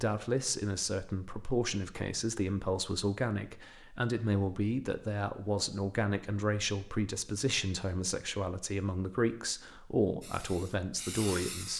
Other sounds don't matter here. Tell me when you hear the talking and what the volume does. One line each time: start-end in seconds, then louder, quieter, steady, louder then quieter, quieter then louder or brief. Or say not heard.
0.0-11.7 steady.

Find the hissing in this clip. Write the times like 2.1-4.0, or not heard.
10.2-11.7.